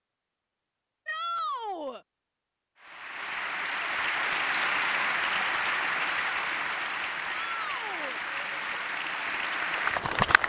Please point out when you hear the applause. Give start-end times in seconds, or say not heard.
2.8-10.4.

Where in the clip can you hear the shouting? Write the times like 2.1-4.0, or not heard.
1.1-2.0, 7.2-8.2.